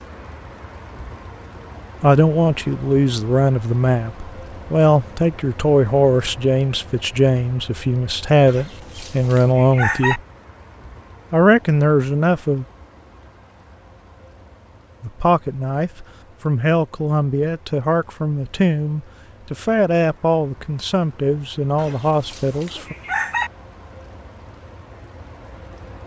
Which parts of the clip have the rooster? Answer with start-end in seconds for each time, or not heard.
8.4-10.2, 21.8-23.5.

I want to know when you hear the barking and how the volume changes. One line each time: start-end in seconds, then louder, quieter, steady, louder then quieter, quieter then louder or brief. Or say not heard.
not heard.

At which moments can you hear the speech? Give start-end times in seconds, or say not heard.
2.0-10.2, 11.3-12.7, 15.0-22.9.